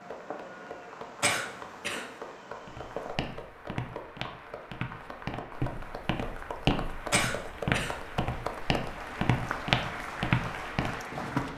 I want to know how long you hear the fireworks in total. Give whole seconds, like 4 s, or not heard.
3 s.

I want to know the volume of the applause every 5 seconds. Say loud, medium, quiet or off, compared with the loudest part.
medium, loud, loud.